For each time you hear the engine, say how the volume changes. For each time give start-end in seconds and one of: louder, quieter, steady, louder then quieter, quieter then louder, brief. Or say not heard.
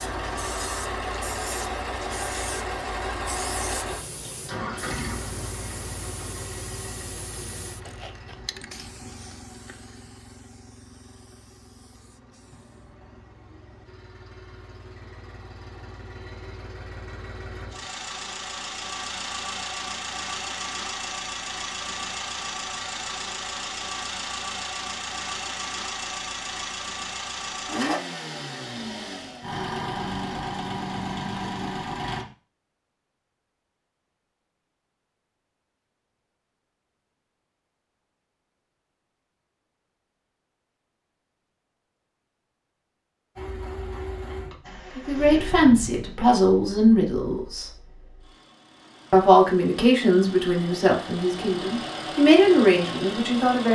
0.0-32.2 quieter then louder
43.4-53.6 quieter then louder.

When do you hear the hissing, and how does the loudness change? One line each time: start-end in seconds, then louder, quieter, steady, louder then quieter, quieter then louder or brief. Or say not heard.
0.1-12.9 quieter.